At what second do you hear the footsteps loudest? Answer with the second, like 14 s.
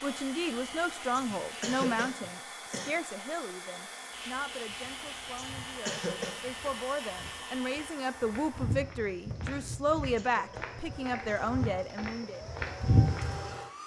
13 s.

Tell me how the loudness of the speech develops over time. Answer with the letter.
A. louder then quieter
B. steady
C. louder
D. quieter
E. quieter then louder
E.